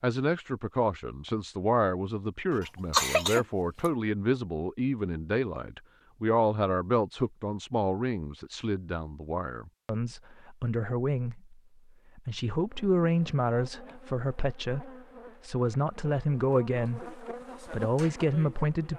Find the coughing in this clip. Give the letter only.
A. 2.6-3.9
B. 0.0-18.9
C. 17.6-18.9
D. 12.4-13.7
A.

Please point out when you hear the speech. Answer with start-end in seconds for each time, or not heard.
0.0-18.9.